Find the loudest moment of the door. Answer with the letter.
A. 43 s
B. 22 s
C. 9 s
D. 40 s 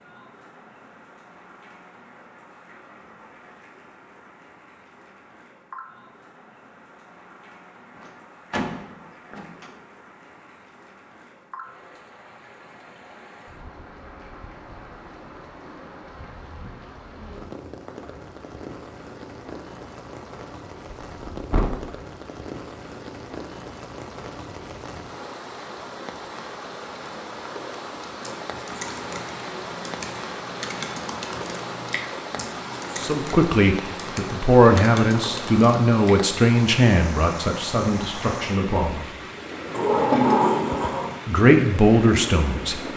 D.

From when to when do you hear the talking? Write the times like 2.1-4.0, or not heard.
33.0-39.1, 41.2-42.8.